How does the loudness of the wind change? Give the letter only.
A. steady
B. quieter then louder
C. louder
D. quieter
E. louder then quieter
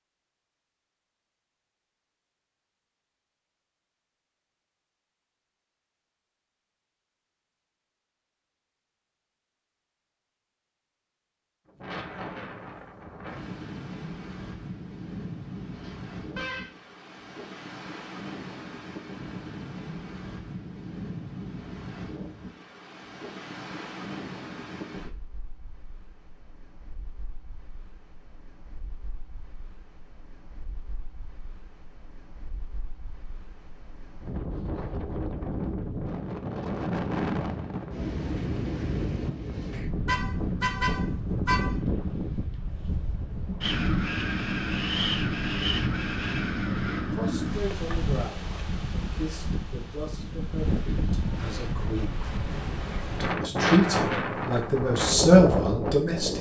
C.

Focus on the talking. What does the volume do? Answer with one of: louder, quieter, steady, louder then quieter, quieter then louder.
louder.